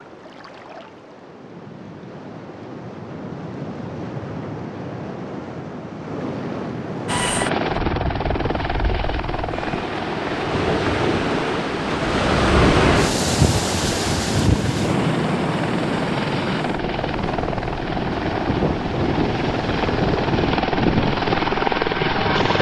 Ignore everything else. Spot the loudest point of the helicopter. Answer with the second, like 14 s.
21 s.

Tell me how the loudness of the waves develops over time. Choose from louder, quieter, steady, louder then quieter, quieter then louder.
louder then quieter.